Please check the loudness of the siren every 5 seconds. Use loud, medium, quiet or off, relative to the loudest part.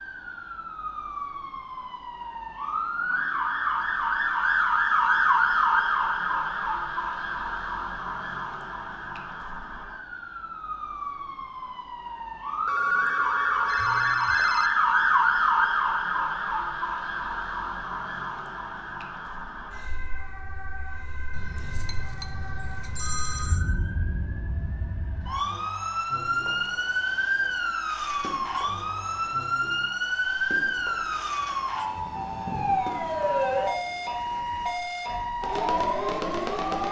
loud, loud, loud, loud, quiet, loud, loud, loud.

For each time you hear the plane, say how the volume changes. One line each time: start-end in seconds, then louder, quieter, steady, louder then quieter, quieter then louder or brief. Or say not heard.
not heard.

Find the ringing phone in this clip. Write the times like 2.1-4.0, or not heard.
12.7-14.7, 21.3-23.6.